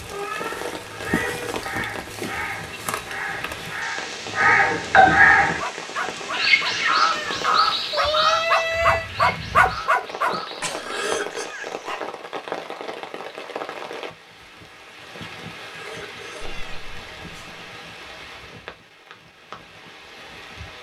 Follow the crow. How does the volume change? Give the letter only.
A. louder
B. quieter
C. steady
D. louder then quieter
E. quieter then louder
D.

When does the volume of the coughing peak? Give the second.
11 s.